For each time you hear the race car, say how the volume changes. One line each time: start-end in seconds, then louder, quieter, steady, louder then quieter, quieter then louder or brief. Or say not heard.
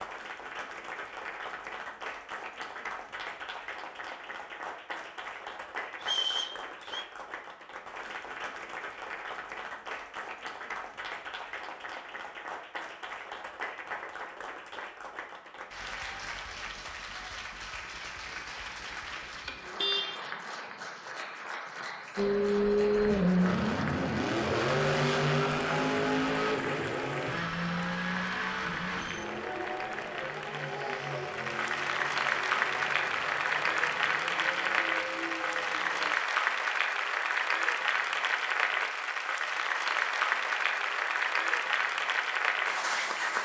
22.1-36.1 quieter.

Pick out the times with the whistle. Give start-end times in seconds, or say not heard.
6.0-7.0.